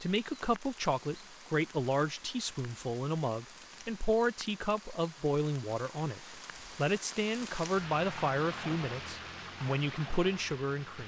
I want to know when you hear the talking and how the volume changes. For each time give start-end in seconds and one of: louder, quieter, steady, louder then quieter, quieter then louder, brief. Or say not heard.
0.0-11.0 steady.